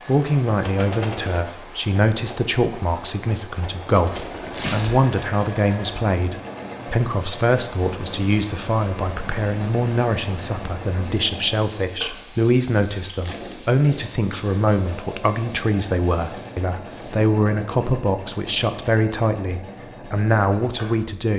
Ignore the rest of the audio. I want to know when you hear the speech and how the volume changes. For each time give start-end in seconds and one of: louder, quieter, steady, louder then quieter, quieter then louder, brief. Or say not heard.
0.1-21.3 steady.